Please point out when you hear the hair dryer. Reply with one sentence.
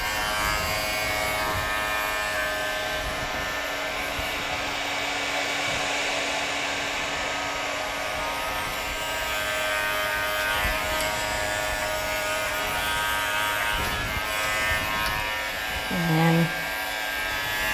The hair dryer can be heard from 0.0 to 17.6 s.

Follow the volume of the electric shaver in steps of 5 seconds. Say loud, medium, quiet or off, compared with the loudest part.
loud, medium, loud, loud.